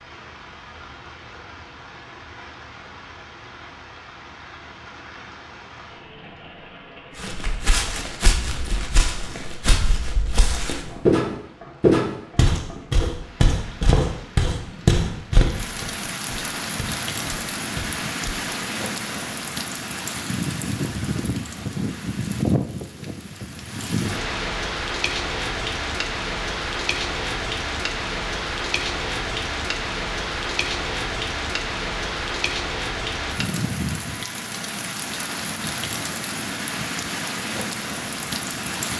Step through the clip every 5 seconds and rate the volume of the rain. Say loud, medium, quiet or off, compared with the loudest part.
quiet, quiet, quiet, loud, loud, loud, loud, loud.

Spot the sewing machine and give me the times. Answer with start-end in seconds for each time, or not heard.
not heard.